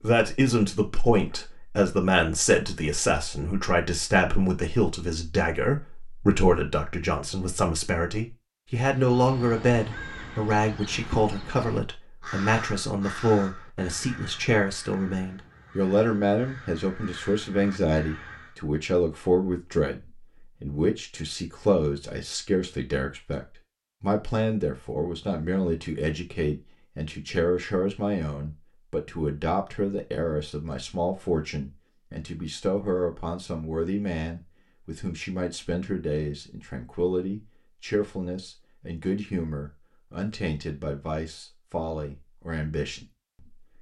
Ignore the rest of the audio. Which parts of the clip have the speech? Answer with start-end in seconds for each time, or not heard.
0.0-43.7.